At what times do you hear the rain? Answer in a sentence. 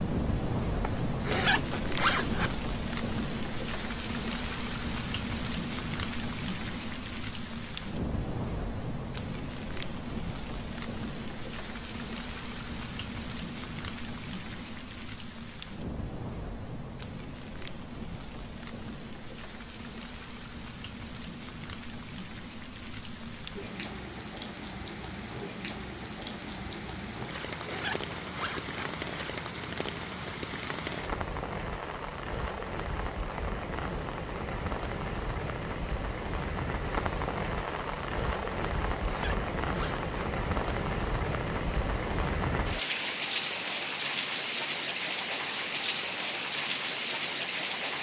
You can hear the rain from 0.0 to 47.9 s.